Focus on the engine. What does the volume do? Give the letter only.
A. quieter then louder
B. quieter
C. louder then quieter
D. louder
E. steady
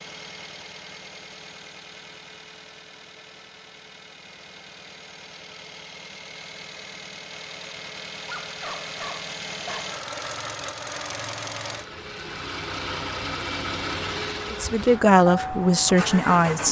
D.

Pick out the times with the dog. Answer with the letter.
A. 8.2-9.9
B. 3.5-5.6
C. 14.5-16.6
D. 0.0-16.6
A.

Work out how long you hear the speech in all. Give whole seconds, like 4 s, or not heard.
2 s.